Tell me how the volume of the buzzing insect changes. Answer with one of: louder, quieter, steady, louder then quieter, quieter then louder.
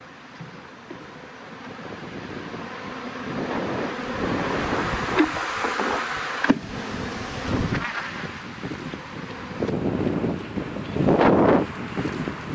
louder then quieter.